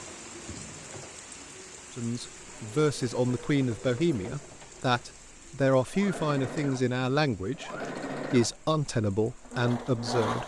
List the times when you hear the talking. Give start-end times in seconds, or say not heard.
1.9-10.4.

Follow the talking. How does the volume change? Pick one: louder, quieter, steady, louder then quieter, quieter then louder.
steady.